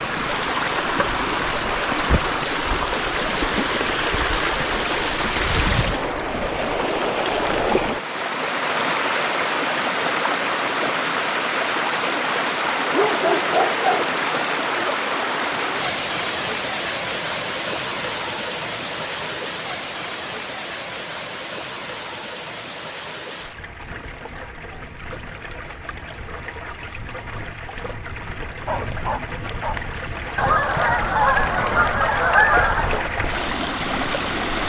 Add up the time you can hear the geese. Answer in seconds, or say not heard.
3 s.